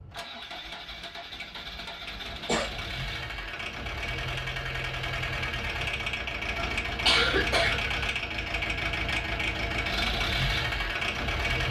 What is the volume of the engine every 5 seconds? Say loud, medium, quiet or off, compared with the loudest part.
medium, loud, loud.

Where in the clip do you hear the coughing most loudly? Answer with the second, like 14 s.
7 s.